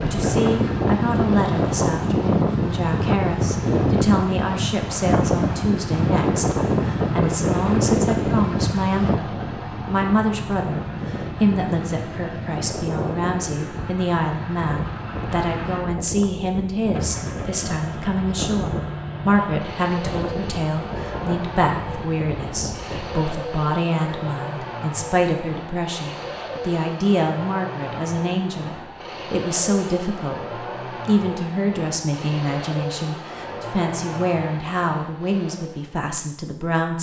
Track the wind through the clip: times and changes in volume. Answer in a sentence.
You can hear the wind from 0.0 to 23.4 s, getting quieter.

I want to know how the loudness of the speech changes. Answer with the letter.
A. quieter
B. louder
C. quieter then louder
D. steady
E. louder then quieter
D.